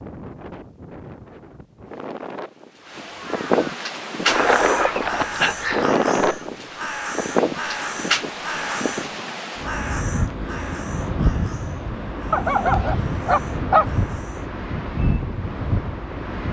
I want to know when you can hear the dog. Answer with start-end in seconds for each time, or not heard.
4.2-5.9, 12.3-13.8.